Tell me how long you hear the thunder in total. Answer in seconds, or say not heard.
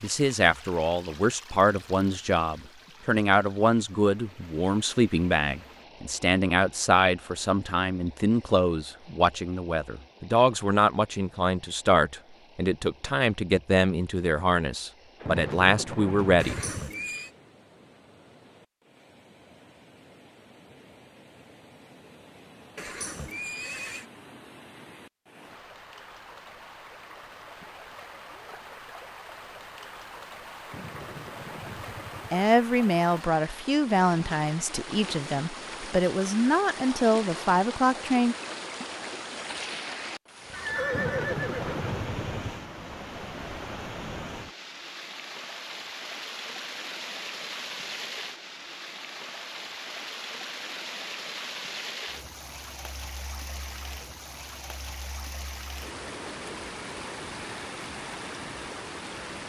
5 s.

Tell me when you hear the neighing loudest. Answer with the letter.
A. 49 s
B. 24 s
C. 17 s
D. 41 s
D.